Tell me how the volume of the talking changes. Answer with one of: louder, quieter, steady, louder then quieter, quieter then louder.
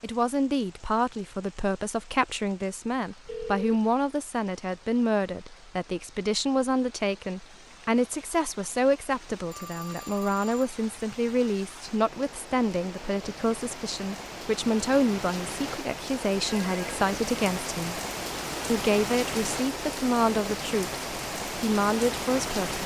steady.